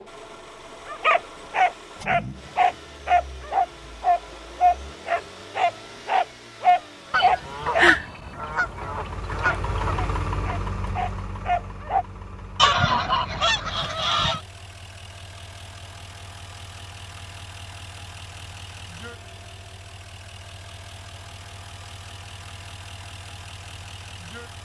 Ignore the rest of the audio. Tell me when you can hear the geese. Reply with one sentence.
The geese can be heard from 7.1 to 9.9 s and from 12.6 to 14.4 s.